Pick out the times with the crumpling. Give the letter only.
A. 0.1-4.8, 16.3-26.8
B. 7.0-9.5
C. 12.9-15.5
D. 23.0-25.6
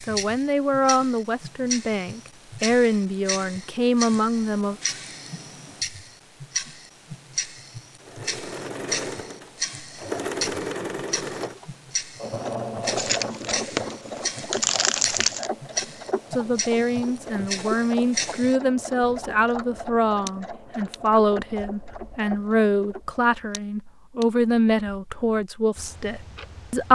C.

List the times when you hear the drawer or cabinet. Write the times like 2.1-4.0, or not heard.
not heard.